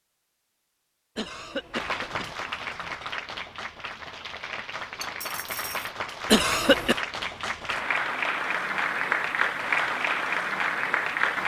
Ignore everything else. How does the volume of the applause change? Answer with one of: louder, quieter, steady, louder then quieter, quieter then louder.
louder.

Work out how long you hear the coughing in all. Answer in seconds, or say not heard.
2 s.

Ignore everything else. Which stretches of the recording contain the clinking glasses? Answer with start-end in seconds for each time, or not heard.
5.0-5.9.